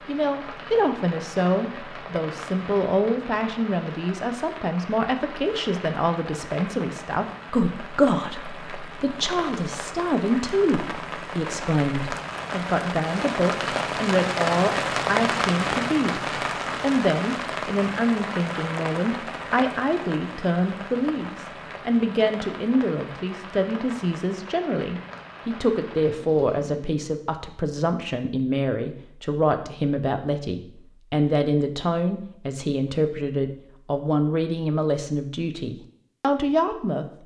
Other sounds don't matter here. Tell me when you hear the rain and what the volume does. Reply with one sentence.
The rain can be heard from 0.0 to 27.0 s, getting louder then quieter.